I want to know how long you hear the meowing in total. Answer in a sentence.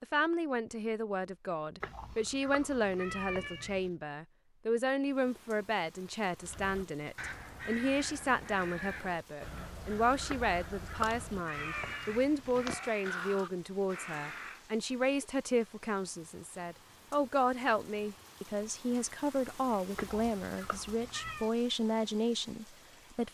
The meowing can be heard for 6 seconds in total.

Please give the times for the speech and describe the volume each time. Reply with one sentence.
The speech can be heard from 0.0 to 23.3 s, at a steady volume.